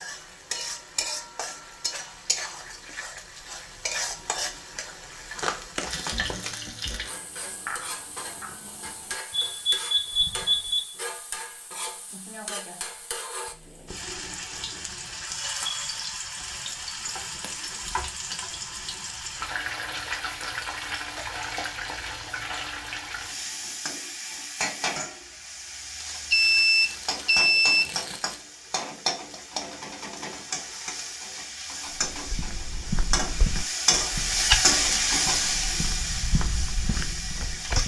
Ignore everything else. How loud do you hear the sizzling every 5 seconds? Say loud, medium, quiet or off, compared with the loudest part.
medium, medium, medium, medium, medium, medium, loud, loud.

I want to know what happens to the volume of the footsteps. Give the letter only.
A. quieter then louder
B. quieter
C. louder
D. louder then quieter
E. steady
D.